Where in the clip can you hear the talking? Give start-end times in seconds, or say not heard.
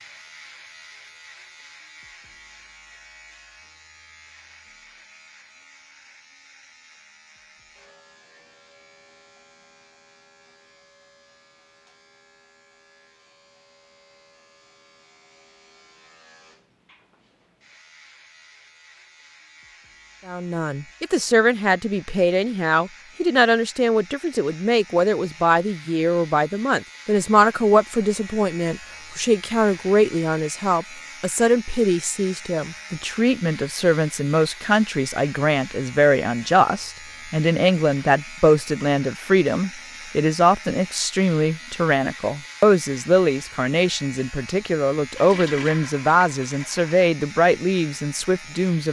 20.2-48.8.